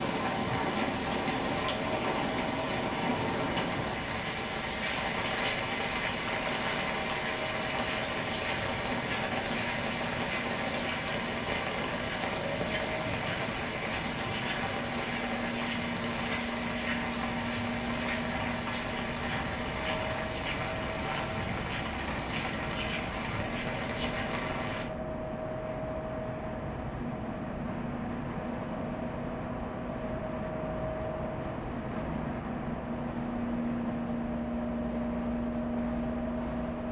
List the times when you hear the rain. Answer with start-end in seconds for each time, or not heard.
0.0-24.9.